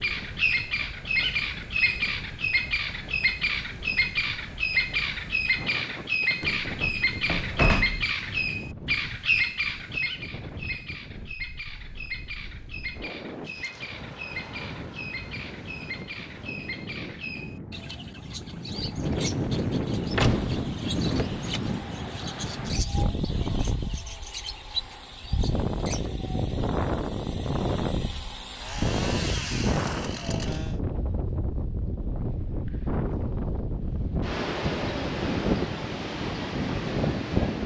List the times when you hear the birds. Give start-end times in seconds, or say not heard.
0.0-26.1.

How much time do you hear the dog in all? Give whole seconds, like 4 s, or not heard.
not heard.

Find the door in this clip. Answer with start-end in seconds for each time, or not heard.
6.4-8.1, 20.1-21.6.